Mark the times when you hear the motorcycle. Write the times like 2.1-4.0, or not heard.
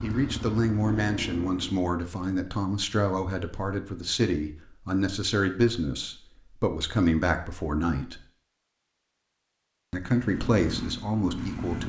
0.0-1.9, 10.1-11.8.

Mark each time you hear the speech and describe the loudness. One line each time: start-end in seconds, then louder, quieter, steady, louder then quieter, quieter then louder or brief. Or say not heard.
0.0-8.2 steady
9.9-11.8 brief.